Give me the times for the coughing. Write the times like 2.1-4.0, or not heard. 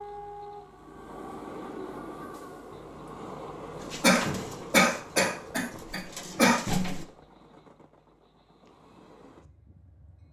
4.0-6.5.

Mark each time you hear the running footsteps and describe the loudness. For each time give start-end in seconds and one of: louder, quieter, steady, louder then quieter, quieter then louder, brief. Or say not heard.
not heard.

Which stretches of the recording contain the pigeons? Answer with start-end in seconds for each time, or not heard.
3.8-7.0.